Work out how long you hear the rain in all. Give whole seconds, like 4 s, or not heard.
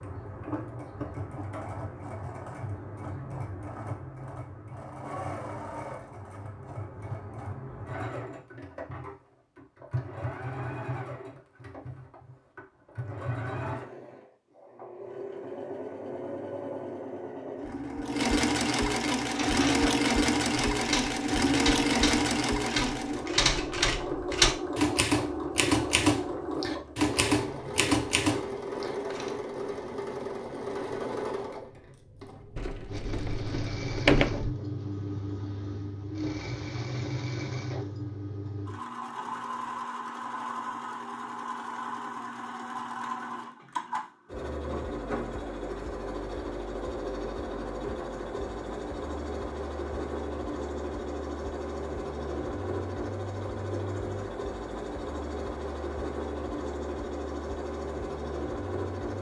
not heard.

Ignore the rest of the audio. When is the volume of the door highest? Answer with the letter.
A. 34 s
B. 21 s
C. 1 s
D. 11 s
A.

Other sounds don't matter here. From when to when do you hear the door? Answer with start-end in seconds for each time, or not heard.
32.5-34.5.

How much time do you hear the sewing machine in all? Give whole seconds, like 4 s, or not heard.
59 s.